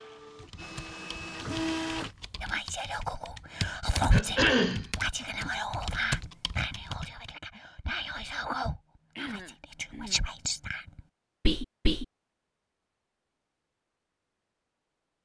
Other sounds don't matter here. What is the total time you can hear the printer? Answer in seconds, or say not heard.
2 s.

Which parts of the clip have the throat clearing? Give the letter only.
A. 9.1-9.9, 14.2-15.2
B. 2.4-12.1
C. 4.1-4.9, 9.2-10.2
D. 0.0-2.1
C.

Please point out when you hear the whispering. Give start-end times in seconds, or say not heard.
2.4-12.1.